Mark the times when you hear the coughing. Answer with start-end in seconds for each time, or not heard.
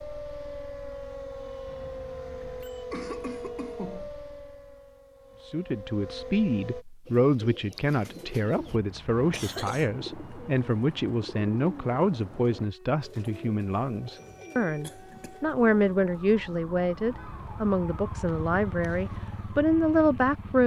2.9-4.1, 9.3-9.9, 14.8-15.3.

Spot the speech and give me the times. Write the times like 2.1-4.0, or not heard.
5.5-20.6.